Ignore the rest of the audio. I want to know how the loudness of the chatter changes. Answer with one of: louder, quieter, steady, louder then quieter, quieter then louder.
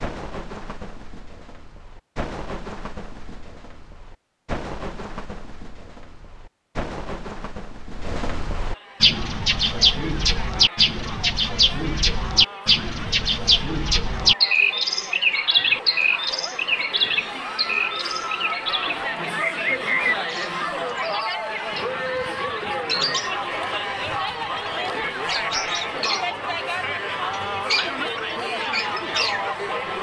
louder.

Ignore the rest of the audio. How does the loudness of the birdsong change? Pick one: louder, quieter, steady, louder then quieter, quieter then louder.
louder then quieter.